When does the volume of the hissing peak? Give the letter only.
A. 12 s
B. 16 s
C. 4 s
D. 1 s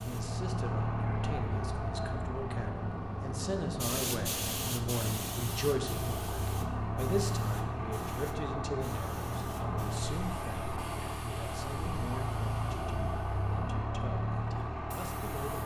C.